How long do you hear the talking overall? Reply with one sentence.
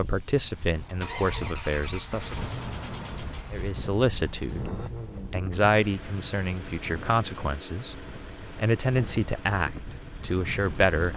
You can hear the talking for 9 seconds altogether.